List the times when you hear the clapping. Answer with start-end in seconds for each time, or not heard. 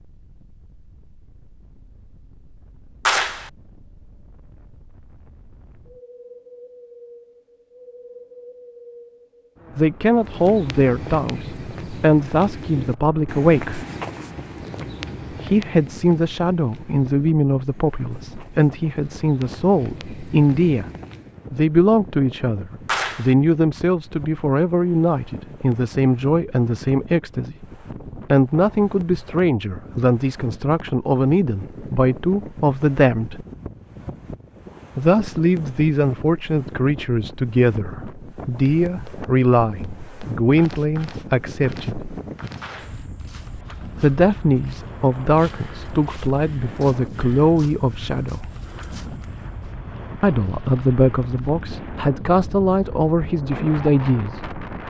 3.0-3.5, 22.9-23.4, 42.6-43.0.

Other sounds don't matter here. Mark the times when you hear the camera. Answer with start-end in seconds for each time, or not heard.
not heard.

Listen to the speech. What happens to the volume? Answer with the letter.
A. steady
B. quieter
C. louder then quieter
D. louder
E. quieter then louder
A.